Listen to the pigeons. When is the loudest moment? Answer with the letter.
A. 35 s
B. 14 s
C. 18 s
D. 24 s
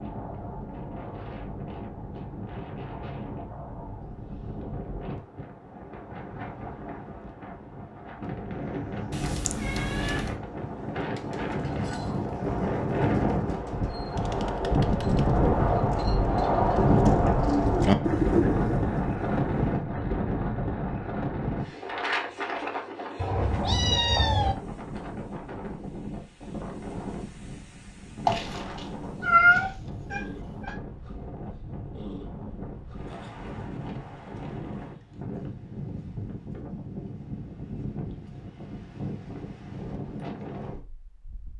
C.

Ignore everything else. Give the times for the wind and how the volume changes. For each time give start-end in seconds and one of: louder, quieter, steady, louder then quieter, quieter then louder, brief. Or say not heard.
0.0-41.5 louder then quieter.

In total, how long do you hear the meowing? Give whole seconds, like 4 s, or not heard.
5 s.